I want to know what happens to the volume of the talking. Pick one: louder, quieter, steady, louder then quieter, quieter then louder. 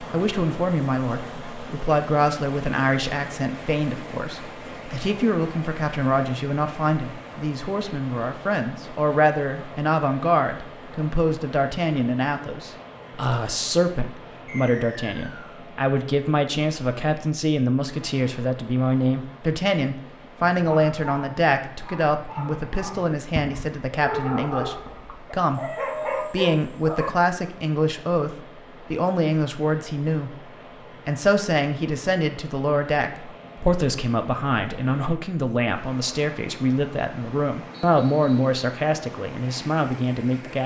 steady.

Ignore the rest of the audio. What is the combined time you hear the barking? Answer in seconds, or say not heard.
7 s.